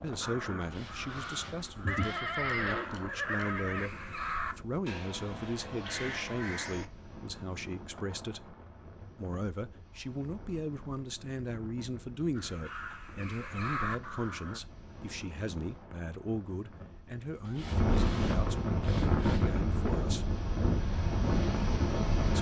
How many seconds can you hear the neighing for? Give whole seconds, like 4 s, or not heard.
2 s.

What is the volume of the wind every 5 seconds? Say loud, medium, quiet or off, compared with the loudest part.
quiet, quiet, quiet, loud, loud.